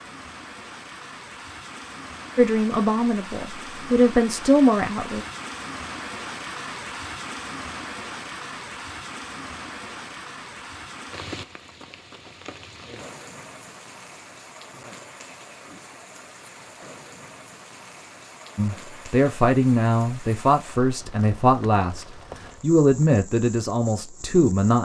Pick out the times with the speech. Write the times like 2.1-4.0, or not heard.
2.4-5.2, 18.6-24.7.